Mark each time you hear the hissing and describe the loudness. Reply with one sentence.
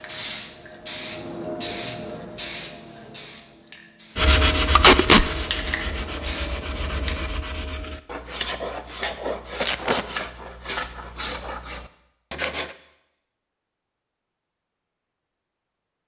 You can hear the hissing from 0.0 to 7.3 s, getting quieter then louder.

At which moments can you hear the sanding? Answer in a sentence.
The sanding can be heard from 4.2 to 12.8 s.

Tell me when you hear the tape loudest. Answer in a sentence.
The loudest moment of the tape is at 5 seconds.